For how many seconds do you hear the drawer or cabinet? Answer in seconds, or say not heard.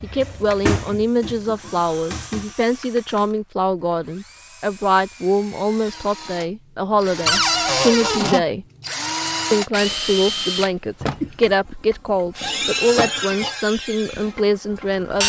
4 s.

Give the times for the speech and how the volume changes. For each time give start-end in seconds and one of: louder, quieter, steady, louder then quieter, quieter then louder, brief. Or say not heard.
0.0-8.7 steady
9.5-15.2 steady.